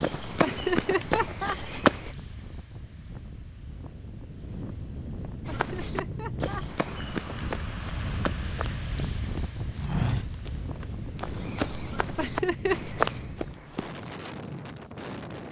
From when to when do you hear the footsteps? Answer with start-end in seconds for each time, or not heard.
0.0-2.1, 5.5-13.9.